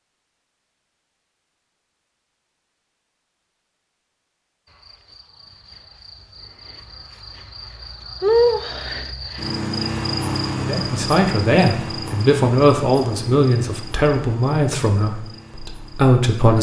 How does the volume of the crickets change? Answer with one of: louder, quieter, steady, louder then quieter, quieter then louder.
louder then quieter.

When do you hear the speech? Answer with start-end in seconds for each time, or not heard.
10.7-16.5.